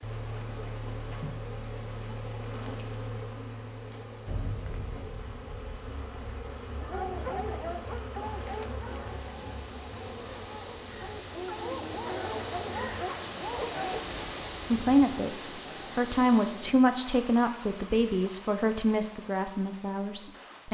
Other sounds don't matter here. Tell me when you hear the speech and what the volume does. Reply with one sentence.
You can hear the speech from 14.7 to 20.6 s, getting louder then quieter.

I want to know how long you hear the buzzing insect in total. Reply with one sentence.
You can hear the buzzing insect for 13 seconds altogether.